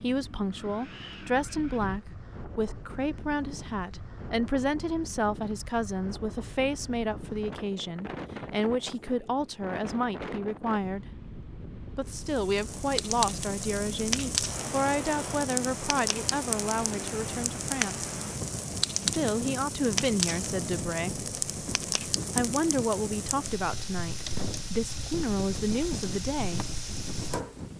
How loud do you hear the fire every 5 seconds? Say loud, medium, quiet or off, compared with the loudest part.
off, off, loud, loud, loud, medium.